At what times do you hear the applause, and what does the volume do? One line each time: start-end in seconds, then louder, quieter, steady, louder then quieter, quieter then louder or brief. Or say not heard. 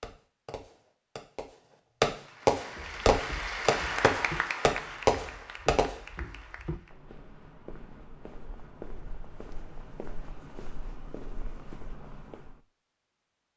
2.1-7.0 louder then quieter.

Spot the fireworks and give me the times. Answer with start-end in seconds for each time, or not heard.
0.0-6.0.